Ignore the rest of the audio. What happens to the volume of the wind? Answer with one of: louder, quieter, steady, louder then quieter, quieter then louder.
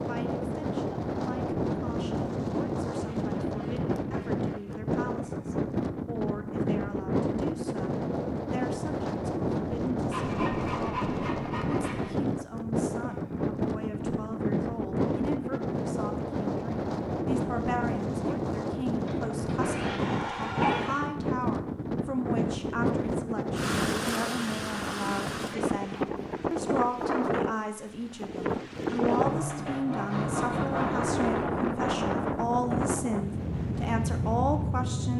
steady.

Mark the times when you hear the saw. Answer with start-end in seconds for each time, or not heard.
3.0-4.8, 10.1-12.1, 19.1-21.1, 29.1-31.1.